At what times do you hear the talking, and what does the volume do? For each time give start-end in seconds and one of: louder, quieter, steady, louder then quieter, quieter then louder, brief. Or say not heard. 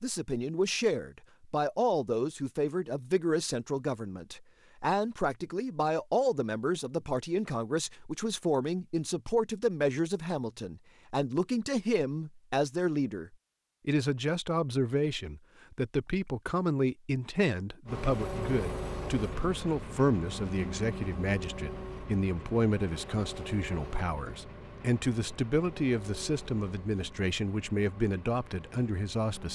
0.0-29.5 steady.